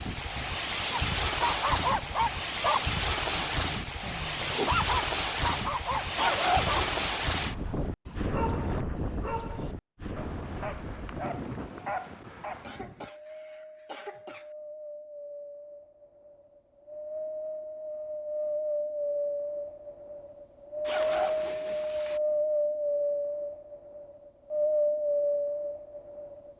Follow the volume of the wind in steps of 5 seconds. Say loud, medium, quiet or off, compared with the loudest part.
loud, loud, quiet, medium, loud, loud.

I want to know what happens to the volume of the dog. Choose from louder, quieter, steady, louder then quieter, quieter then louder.
quieter.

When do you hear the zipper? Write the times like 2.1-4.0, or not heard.
6.2-7.2, 20.9-22.2.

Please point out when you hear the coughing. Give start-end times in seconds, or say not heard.
12.6-14.5.